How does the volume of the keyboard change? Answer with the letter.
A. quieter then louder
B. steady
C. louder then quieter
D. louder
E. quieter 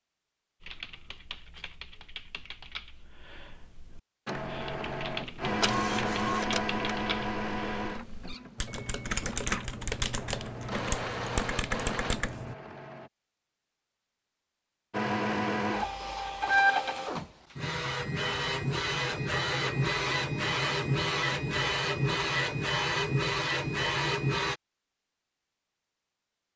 D.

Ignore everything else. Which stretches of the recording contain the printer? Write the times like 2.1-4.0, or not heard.
4.2-13.1, 14.9-24.6.